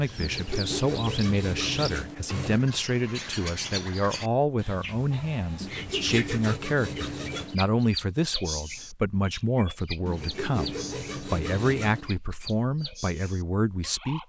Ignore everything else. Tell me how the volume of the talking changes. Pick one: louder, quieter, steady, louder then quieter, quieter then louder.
steady.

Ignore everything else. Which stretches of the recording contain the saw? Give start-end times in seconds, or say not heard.
0.2-2.6, 5.6-7.6, 10.1-12.2.